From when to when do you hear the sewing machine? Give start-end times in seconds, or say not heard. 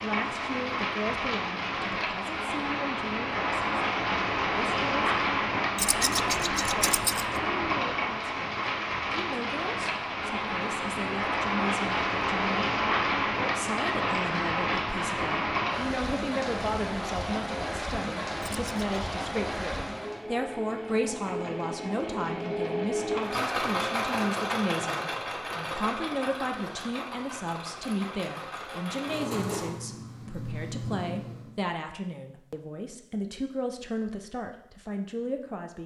19.8-31.6.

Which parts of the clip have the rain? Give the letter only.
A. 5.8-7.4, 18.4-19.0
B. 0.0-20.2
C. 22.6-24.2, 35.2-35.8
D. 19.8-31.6
B.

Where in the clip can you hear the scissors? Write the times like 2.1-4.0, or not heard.
5.8-7.4, 18.4-19.0.